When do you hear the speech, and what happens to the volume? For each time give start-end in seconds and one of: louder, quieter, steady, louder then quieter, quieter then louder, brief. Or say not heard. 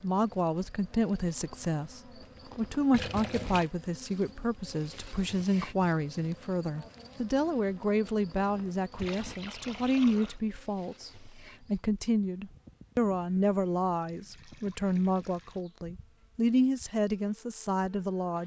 0.0-18.4 steady.